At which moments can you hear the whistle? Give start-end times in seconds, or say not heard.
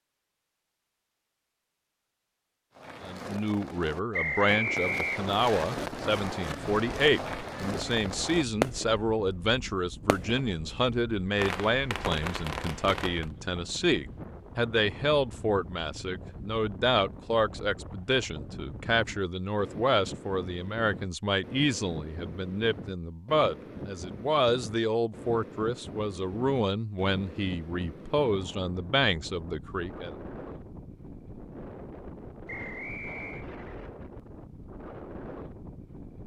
4.1-5.7, 32.5-33.5.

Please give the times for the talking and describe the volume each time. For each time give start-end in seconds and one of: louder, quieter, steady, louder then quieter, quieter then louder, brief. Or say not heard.
3.0-30.1 steady.